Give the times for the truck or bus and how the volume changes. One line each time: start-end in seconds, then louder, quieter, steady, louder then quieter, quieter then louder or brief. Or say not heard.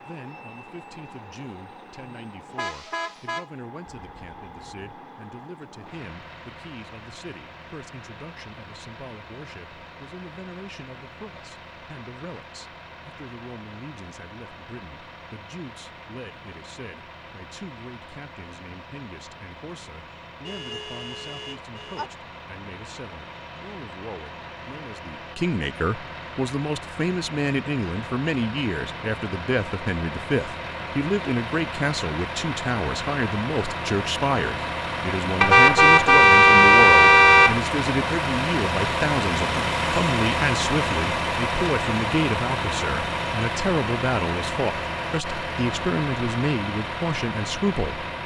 0.0-48.2 louder.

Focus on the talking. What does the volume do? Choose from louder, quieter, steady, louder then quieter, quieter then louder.
louder.